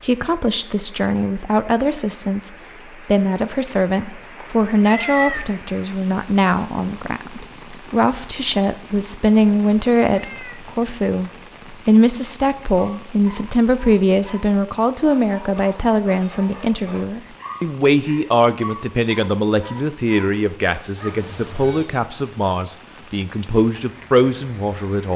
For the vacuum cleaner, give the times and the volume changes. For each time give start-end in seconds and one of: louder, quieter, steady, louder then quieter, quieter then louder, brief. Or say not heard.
not heard.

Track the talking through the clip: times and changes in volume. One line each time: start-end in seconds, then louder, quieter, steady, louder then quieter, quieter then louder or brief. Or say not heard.
0.0-25.1 steady.